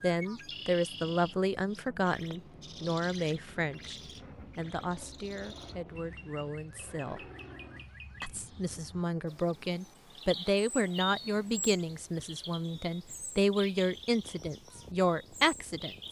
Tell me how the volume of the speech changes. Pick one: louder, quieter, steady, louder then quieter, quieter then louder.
quieter then louder.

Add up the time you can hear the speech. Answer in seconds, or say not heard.
15 s.